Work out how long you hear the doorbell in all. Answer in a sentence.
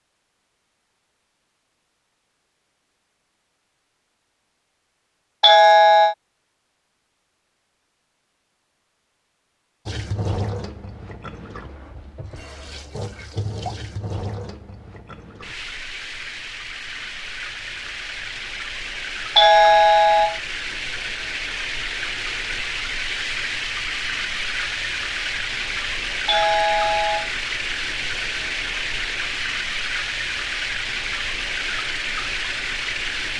You can hear the doorbell for 3 seconds altogether.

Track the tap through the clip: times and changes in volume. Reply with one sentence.
You can hear the tap from 9.8 to 33.3 s, getting louder.